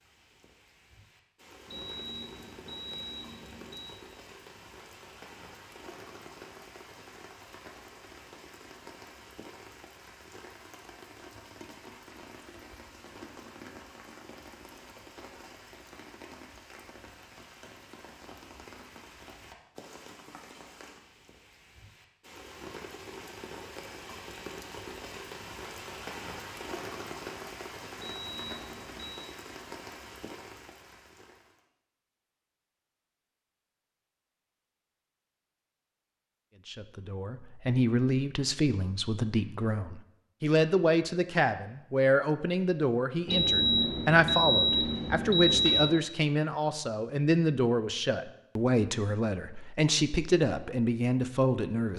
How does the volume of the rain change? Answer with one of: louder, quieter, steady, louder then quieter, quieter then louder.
louder.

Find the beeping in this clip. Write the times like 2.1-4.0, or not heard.
1.6-4.0, 27.9-29.4, 43.2-46.0.